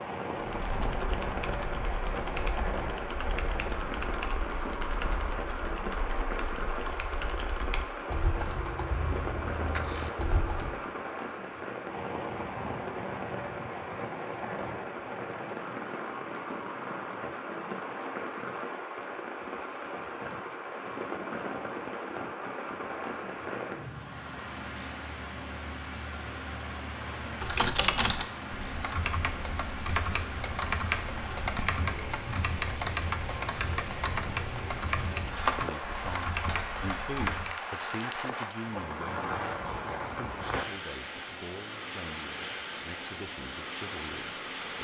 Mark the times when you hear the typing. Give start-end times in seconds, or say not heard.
0.3-10.8, 27.2-37.5.